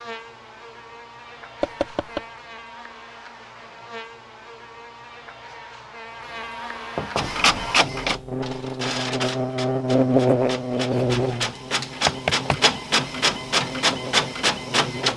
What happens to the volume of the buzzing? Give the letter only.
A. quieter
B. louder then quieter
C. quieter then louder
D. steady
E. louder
B.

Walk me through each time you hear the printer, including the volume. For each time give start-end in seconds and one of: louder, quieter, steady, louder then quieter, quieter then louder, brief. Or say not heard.
7.2-15.1 quieter then louder.